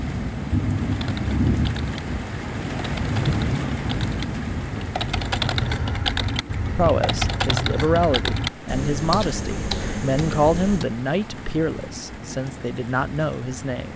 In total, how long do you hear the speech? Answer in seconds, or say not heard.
7 s.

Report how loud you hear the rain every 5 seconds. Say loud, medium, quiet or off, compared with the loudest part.
loud, medium, medium.